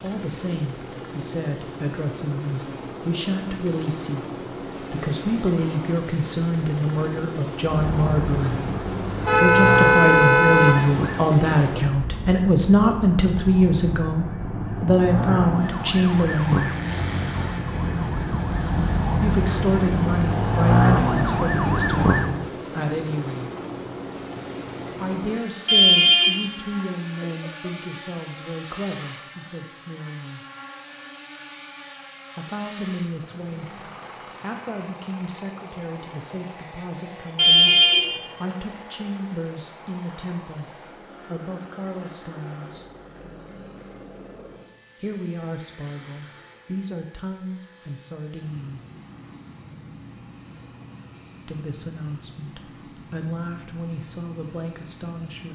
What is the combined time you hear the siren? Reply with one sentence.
The siren can be heard for 15 seconds in total.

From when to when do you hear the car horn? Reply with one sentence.
The car horn can be heard from 9.2 to 10.8 s, from 25.6 to 26.4 s, from 27.2 to 27.7 s and from 37.4 to 38.1 s.